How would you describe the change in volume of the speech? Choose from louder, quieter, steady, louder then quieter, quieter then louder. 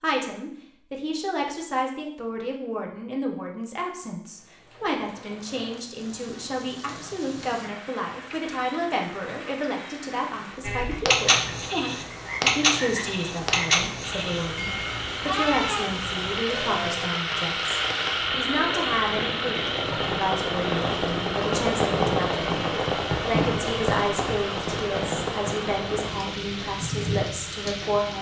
steady.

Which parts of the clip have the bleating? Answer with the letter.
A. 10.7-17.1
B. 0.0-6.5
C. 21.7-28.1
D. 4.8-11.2
A.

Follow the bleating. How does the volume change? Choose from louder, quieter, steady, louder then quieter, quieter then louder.
quieter.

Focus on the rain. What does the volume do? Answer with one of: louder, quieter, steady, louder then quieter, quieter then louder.
louder.